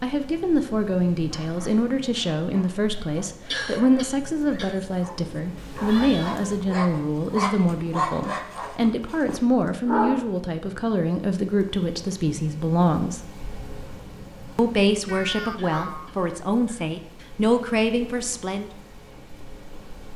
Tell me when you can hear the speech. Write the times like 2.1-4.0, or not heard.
0.0-13.2, 14.6-18.7.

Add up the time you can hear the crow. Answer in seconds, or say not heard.
not heard.